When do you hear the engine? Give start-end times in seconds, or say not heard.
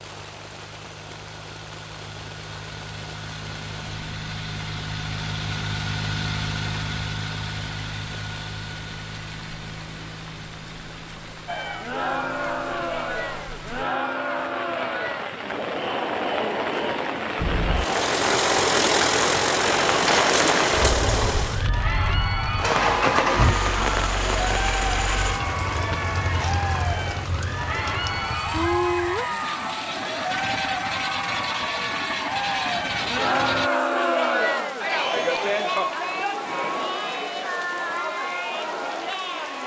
0.0-14.0, 17.4-33.7.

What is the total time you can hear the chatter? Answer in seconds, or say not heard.
28 s.